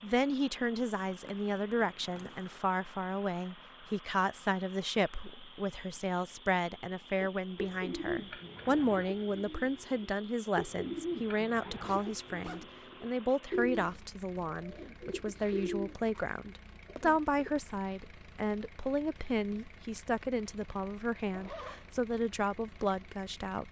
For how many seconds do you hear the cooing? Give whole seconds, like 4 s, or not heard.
10 s.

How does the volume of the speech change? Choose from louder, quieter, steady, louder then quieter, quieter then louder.
steady.